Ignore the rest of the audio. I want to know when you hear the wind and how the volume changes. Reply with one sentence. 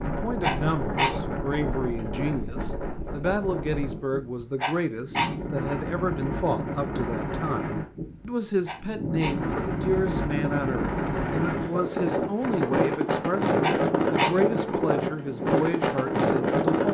The wind can be heard from 0.0 to 16.8 s, getting louder.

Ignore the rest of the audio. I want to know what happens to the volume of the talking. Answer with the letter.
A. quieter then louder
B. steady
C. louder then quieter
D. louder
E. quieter
B.